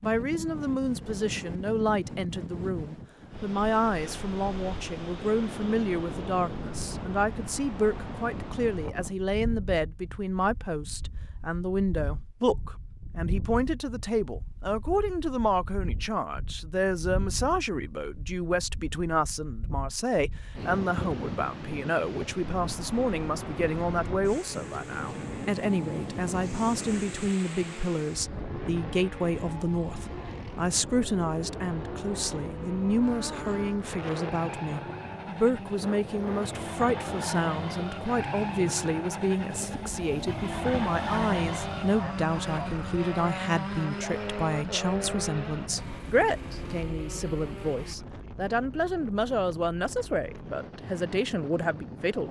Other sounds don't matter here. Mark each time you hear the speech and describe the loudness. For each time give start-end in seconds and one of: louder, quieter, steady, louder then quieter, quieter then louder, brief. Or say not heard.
0.0-52.2 steady.